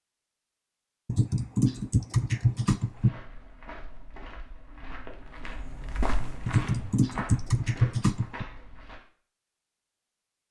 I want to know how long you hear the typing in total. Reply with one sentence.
You can hear the typing for 4 seconds altogether.